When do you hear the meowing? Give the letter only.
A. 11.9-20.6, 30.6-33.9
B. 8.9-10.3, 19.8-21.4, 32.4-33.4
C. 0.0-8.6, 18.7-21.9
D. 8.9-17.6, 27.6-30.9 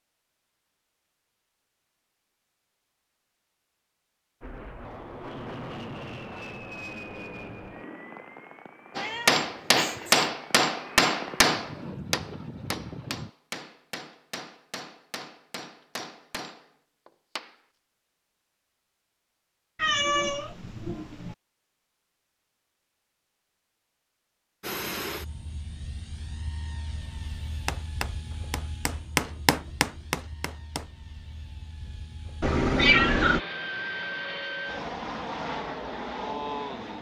B.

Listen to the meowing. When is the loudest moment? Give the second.
33 s.